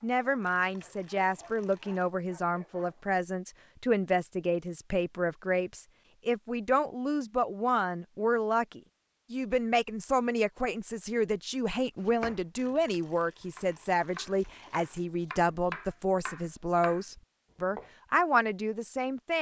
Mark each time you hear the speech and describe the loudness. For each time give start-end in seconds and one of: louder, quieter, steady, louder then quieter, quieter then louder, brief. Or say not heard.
0.0-19.3 steady.